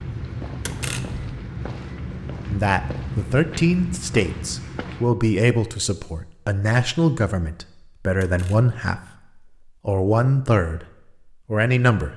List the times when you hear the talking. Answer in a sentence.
You can hear the talking from 2.5 to 9.0 s, from 9.8 to 10.8 s and from 11.4 to 12.1 s.